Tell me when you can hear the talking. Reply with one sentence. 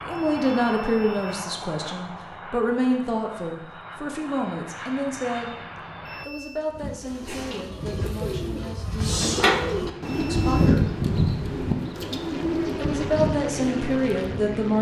The talking can be heard from 0.1 to 5.5 s, from 6.2 to 10.9 s and from 12.8 to 14.7 s.